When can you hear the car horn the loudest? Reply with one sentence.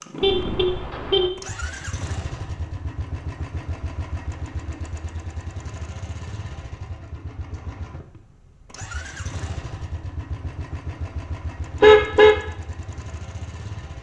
The loudest moment of the car horn is at 12 seconds.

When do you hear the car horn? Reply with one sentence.
You can hear the car horn from 0.2 to 1.3 s and from 11.8 to 12.3 s.